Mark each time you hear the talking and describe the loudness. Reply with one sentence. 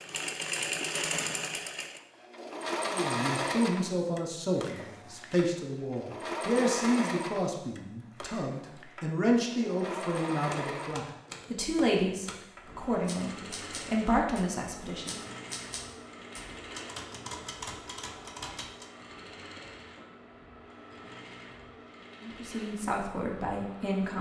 The talking can be heard from 2.9 to 15.2 s, at a steady volume; and briefly from 22.2 to 24.1 s.